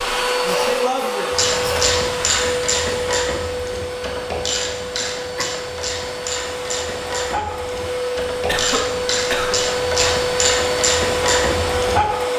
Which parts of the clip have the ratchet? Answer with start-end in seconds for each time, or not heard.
1.3-12.1.